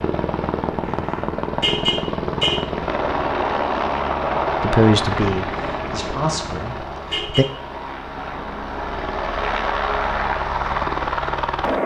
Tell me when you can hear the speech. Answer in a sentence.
You can hear the speech from 4.6 to 7.5 s.